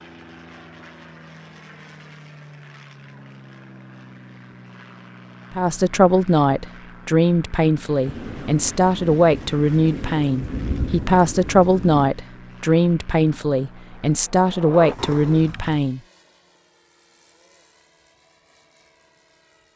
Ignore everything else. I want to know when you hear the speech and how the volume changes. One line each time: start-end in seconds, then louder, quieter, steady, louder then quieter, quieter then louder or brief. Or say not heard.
5.5-16.0 steady.